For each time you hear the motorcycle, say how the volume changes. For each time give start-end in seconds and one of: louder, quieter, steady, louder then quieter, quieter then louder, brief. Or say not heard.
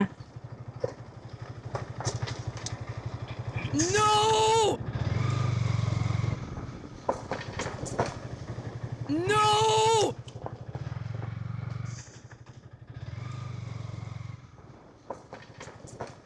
0.0-16.2 louder then quieter.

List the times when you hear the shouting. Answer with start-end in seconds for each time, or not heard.
3.7-4.8, 9.1-10.2.